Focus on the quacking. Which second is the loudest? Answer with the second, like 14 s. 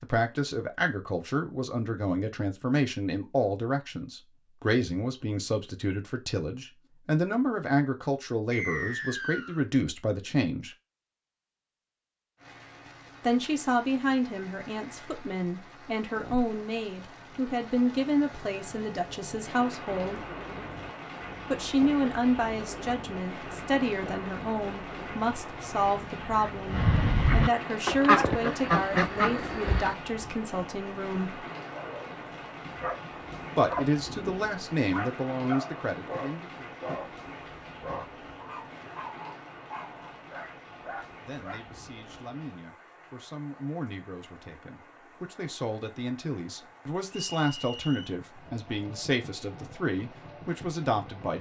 28 s.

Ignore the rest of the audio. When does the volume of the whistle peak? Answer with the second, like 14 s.
9 s.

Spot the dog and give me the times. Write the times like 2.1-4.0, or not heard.
31.6-41.6.